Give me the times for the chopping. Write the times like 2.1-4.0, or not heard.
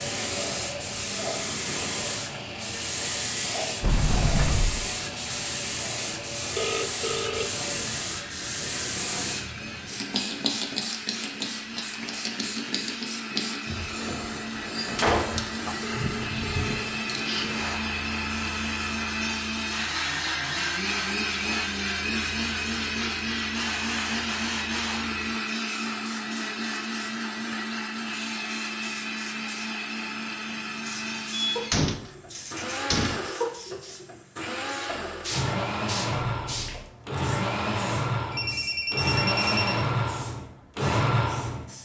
not heard.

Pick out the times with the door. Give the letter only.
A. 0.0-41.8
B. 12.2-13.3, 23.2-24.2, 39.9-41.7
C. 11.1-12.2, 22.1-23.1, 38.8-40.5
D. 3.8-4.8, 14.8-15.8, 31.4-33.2
D.